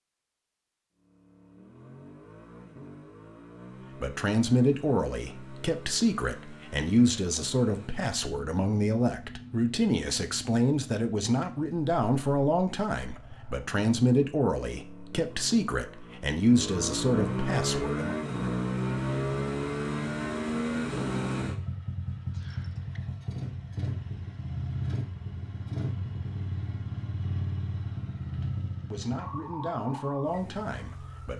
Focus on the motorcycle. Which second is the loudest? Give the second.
19 s.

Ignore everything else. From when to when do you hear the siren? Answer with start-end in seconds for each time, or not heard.
29.1-31.3.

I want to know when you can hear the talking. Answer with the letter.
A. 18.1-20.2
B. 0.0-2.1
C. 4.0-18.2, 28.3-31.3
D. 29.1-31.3
C.